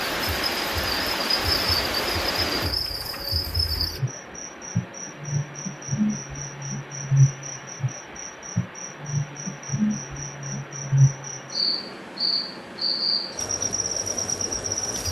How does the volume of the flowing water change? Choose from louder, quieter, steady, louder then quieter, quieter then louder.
quieter.